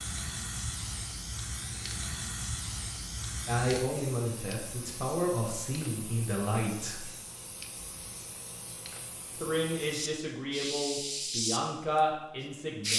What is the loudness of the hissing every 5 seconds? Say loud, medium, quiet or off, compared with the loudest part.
medium, quiet, loud.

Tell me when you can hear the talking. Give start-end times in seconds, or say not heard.
3.5-7.1, 9.3-12.9.